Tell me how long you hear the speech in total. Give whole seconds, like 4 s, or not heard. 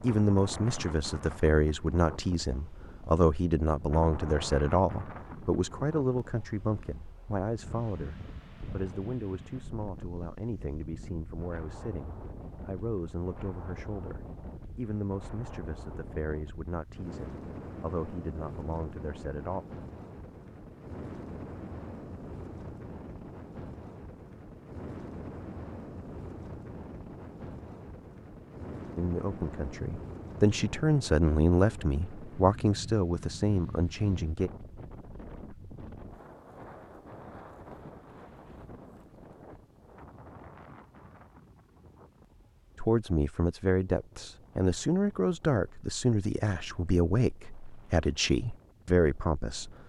32 s.